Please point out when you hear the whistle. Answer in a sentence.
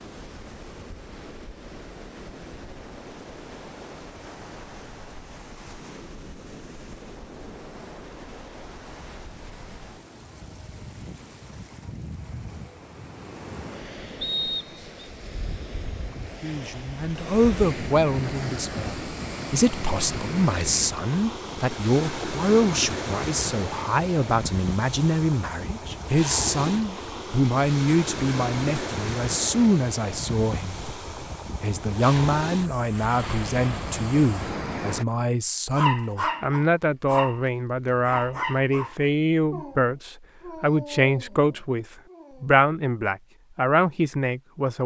The whistle can be heard from 14.2 to 15.1 s.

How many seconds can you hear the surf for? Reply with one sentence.
You can hear the surf for 35 seconds altogether.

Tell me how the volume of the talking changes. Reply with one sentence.
The loudness of the talking stays about the same.